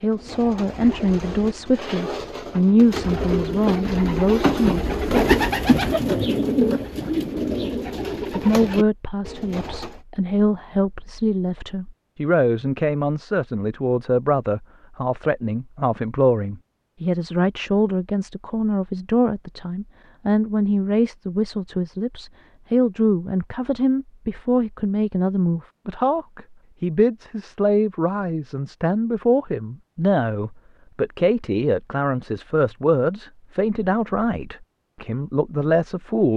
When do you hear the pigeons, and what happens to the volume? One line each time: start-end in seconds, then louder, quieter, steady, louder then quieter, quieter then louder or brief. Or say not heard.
0.0-10.0 louder then quieter.